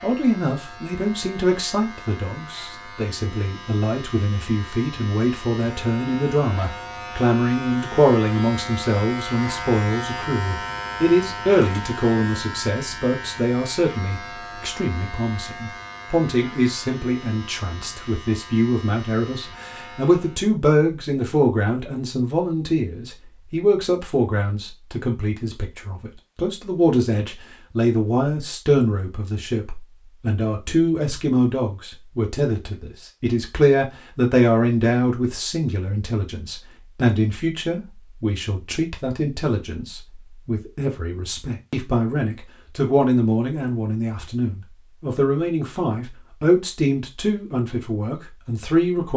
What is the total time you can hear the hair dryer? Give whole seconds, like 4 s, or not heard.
not heard.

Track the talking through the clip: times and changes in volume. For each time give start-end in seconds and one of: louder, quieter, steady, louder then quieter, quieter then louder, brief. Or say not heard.
0.0-49.1 steady.